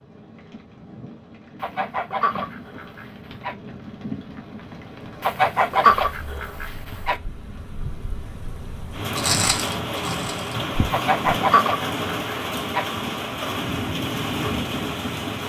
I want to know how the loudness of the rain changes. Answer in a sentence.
The loudness of the rain goes up.